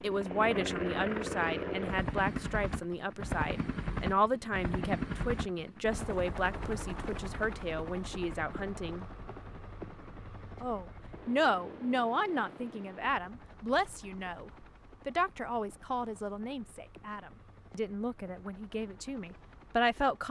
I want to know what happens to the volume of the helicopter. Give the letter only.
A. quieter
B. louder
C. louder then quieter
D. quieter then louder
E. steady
A.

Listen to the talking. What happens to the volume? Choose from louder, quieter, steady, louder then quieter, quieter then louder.
steady.